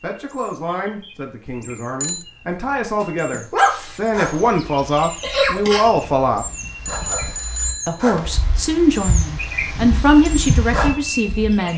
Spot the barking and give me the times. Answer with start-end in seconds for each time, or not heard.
3.0-10.9.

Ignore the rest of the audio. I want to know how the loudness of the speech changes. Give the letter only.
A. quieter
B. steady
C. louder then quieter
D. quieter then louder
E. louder
E.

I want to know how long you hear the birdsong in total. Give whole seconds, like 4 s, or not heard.
12 s.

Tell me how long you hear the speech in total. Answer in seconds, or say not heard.
10 s.